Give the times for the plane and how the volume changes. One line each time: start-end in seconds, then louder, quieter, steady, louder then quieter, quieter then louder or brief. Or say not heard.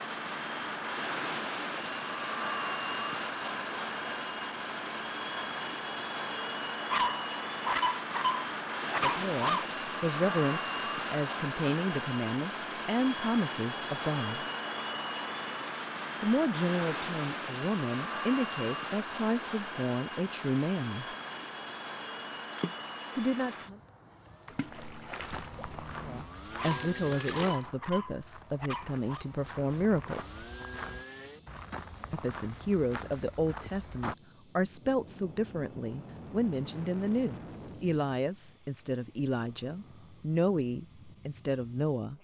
0.0-42.1 quieter.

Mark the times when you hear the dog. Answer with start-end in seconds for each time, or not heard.
6.9-9.7, 26.6-29.2.